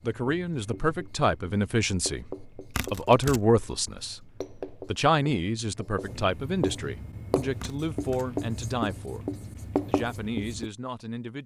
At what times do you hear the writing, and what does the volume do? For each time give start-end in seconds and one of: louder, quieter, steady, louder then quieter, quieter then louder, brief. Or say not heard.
0.0-10.7 louder.